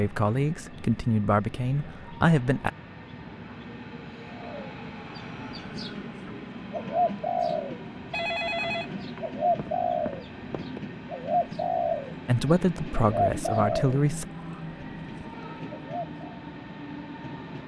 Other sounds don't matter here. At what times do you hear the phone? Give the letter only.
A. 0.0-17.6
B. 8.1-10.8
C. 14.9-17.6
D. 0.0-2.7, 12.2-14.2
B.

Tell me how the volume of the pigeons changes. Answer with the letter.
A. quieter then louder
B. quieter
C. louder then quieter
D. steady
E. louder
C.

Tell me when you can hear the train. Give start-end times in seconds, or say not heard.
0.0-17.6.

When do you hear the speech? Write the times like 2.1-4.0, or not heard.
0.0-2.7, 12.2-14.2.